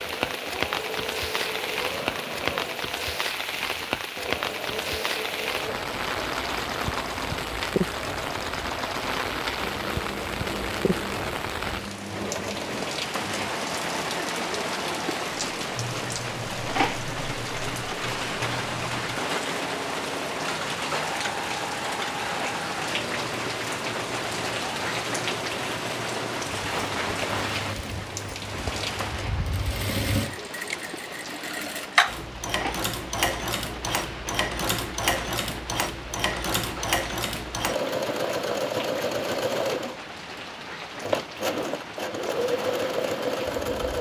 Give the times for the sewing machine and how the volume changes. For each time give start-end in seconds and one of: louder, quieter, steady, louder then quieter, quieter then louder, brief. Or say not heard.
0.0-43.9 louder.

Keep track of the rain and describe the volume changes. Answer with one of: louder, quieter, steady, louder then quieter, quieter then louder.
quieter.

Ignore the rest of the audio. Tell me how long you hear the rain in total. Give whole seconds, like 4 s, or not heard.
44 s.